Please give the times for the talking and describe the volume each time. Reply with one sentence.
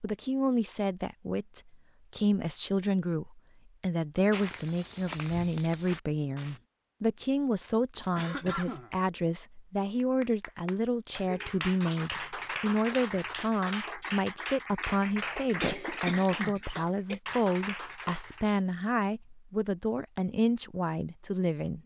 The talking can be heard from 0.0 to 21.8 s, at a steady volume.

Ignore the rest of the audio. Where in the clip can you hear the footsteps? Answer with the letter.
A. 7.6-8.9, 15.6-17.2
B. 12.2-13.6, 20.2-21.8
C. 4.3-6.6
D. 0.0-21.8
C.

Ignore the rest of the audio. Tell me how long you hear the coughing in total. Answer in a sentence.
You can hear the coughing for 3 seconds altogether.